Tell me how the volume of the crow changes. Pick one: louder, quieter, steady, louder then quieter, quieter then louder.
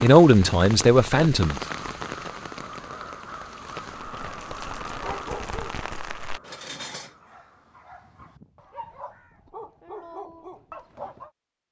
quieter.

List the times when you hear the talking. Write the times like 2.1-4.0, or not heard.
0.0-1.6.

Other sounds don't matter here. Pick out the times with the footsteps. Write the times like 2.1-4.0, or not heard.
not heard.